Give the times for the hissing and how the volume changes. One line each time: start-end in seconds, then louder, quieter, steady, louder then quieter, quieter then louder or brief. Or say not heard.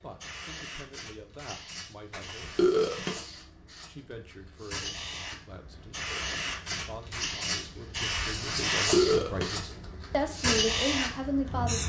0.0-11.8 louder.